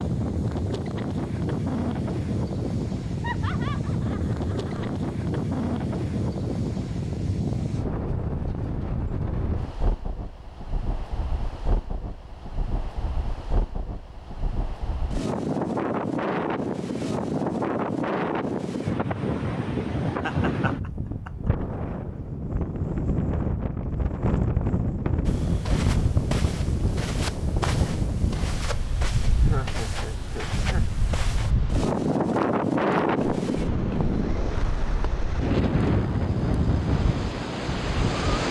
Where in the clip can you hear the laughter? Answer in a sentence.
The laughter can be heard from 3.2 to 4.9 s, from 20.1 to 21.3 s and from 29.4 to 30.9 s.